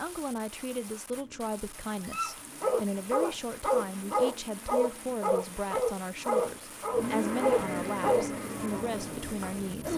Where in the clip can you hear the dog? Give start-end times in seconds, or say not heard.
2.0-9.9.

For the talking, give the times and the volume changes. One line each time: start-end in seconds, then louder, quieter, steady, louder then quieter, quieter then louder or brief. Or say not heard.
0.0-9.9 steady.